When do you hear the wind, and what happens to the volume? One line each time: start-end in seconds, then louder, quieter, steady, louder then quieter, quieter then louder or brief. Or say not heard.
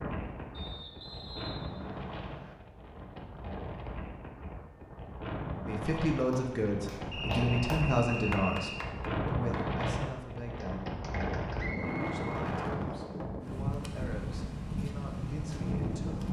0.0-16.2 louder.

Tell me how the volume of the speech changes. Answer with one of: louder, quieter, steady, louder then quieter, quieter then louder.
quieter.